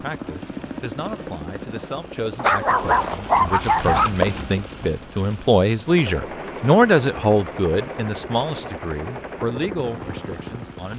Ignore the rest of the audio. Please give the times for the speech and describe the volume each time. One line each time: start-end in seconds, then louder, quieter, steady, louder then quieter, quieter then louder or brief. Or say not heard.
0.0-10.9 louder then quieter.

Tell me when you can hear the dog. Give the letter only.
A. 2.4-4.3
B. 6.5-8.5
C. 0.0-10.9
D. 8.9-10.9
A.